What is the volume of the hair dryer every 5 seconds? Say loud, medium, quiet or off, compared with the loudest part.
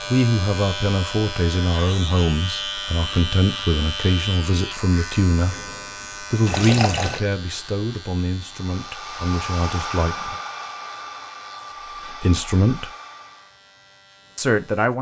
off, loud, loud.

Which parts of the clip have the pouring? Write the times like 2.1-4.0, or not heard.
6.5-7.2.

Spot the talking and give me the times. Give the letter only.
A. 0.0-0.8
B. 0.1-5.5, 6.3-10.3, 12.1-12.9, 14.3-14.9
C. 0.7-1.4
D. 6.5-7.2
B.